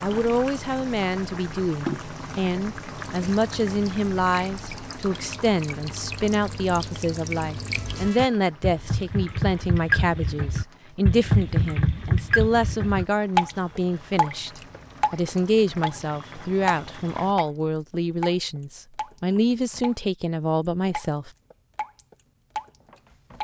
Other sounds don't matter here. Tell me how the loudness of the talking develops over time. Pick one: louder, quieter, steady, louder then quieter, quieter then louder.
steady.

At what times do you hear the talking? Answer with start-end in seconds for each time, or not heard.
0.0-14.5, 15.1-21.3.